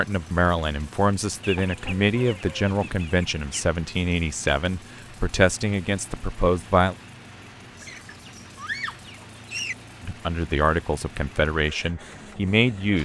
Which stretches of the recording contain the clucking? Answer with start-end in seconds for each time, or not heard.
1.4-3.6, 7.8-9.8.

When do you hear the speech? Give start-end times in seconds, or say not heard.
0.0-7.0, 10.0-12.9.